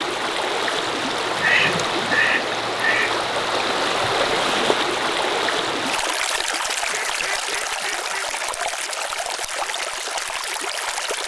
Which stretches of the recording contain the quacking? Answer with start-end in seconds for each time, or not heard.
1.4-3.2, 6.9-8.3.